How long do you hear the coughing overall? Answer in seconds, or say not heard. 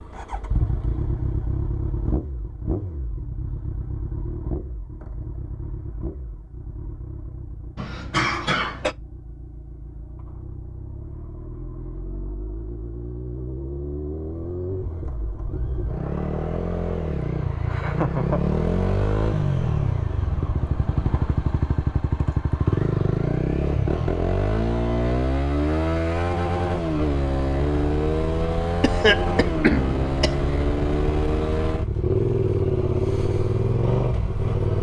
3 s.